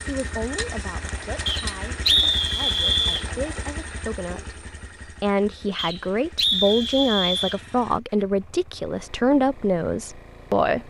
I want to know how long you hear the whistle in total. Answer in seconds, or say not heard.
4 s.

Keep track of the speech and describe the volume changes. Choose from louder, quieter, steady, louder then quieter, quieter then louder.
louder.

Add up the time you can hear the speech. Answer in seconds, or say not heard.
11 s.